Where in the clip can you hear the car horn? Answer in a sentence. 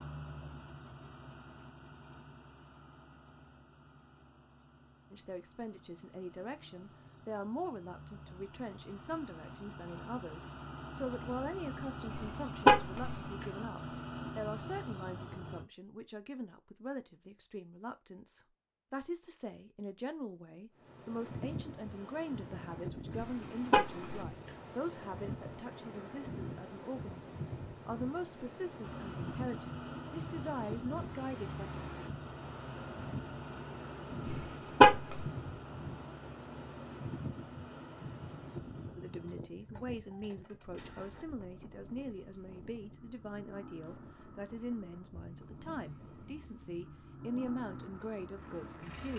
The car horn can be heard from 12.1 to 13.2 s, from 23.2 to 24.1 s and from 34.2 to 35.2 s.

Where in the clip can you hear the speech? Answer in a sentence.
You can hear the speech from 5.1 to 31.6 s and from 39.0 to 49.1 s.